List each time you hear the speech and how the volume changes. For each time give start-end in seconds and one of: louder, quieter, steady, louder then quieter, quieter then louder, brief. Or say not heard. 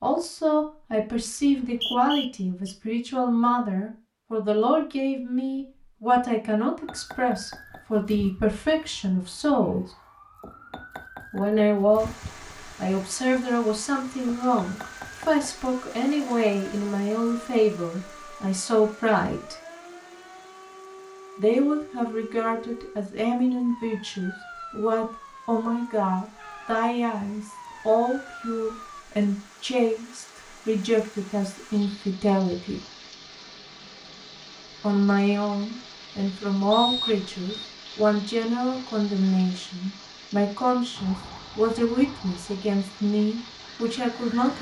0.0-9.8 steady
11.3-12.1 brief
12.8-19.6 steady
21.4-32.8 steady
34.8-44.5 steady.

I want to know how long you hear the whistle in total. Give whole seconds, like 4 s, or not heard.
2 s.